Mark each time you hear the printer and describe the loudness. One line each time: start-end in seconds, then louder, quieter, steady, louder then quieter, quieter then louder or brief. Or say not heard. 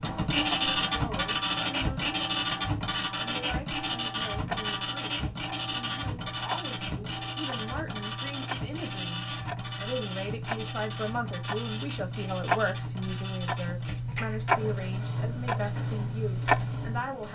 0.0-17.2 quieter.